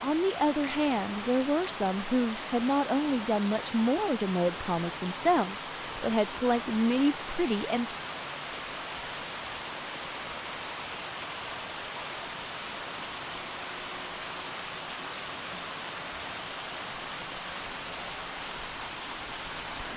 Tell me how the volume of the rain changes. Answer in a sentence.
The volume of the rain stays about the same.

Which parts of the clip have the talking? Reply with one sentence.
You can hear the talking from 0.0 to 7.9 s.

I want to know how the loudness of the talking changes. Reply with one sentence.
The loudness of the talking stays about the same.